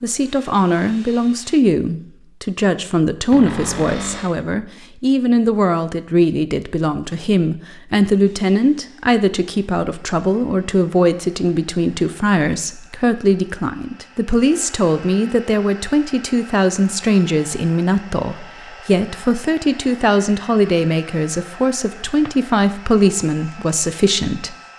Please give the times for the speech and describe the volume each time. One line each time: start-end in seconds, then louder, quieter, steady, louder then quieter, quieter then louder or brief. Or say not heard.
0.0-24.6 steady.